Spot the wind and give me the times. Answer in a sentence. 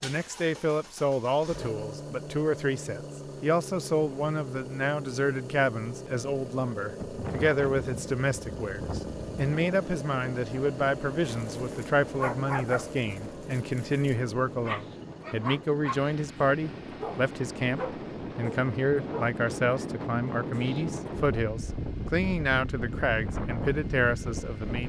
You can hear the wind from 7.0 to 24.8 s.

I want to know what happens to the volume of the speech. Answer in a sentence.
The volume of the speech stays about the same.